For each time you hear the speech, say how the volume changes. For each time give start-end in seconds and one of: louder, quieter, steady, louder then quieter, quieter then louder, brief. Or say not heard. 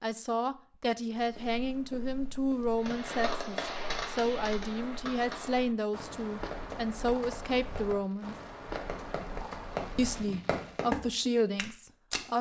0.0-8.3 steady
9.9-12.3 brief.